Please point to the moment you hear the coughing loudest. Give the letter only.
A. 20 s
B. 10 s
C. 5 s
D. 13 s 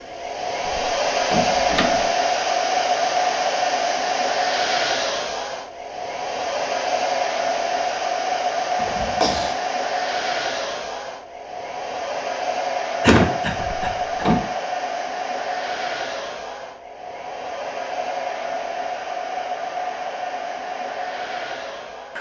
D.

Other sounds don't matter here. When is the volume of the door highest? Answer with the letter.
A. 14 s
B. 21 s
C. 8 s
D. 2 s
A.